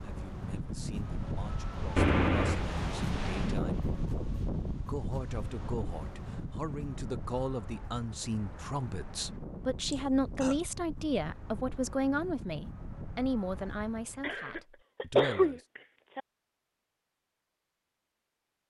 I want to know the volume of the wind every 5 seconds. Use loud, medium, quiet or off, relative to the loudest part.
loud, medium, medium, off.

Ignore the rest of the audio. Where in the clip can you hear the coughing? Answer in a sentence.
You can hear the coughing from 1.9 to 2.6 s, from 9.9 to 10.6 s and from 14.2 to 16.2 s.